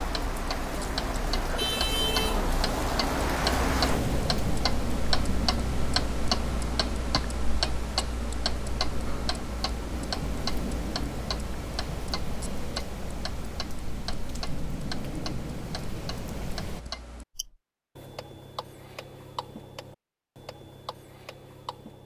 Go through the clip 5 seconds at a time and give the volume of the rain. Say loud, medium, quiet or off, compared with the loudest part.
loud, medium, medium, medium, off.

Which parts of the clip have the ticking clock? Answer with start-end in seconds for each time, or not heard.
0.0-22.0.